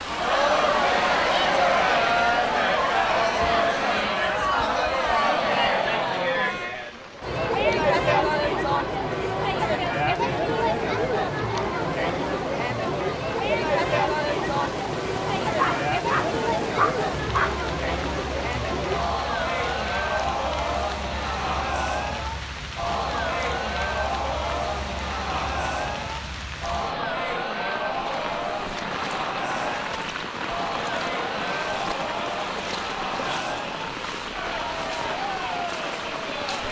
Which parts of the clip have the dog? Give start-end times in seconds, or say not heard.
15.6-17.6.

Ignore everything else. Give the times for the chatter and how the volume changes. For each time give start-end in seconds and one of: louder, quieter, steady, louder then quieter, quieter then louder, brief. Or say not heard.
0.0-36.6 quieter.